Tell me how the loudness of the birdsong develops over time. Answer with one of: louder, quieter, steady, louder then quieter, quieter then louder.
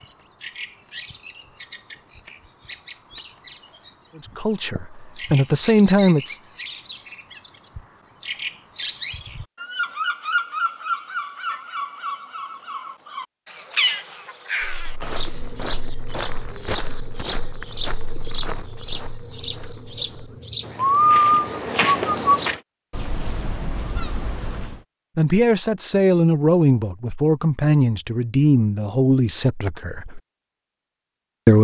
louder.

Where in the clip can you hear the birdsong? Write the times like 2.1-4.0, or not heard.
0.0-24.8.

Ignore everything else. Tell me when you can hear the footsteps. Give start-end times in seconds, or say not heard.
14.6-22.6.